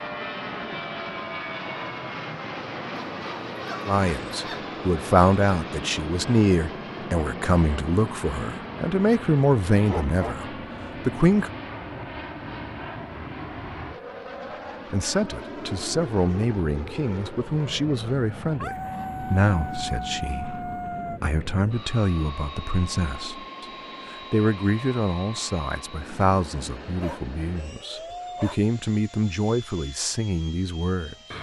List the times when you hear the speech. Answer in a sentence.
The speech can be heard from 3.9 to 11.5 s and from 14.9 to 31.3 s.